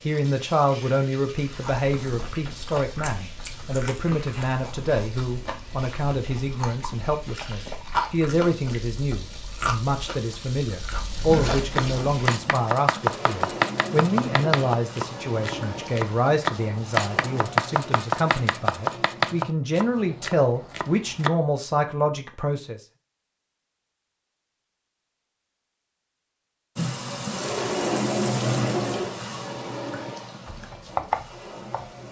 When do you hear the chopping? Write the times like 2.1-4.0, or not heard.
11.6-21.3, 30.4-32.0.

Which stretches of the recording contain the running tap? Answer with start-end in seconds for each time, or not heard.
0.0-19.5, 26.8-32.0.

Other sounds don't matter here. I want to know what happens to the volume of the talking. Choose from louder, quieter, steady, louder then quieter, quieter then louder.
steady.